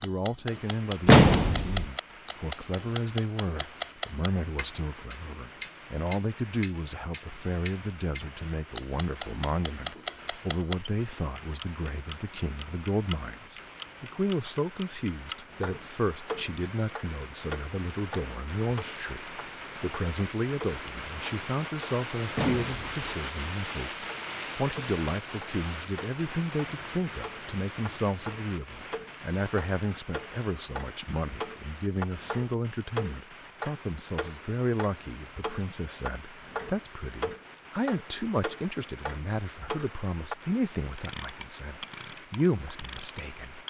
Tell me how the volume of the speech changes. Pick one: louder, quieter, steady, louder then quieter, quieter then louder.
steady.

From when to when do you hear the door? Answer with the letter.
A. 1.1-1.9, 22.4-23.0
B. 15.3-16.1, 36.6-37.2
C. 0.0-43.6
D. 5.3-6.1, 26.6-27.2
A.